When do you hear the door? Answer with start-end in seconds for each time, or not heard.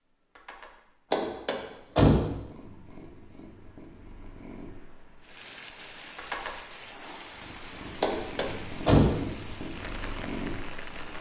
1.1-2.2, 8.0-9.2.